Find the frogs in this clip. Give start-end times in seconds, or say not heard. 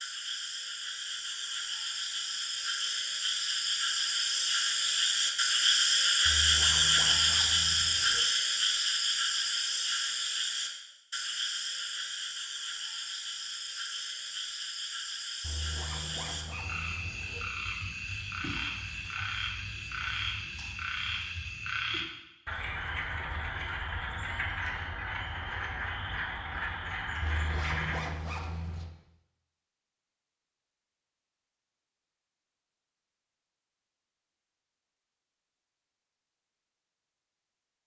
0.0-28.0.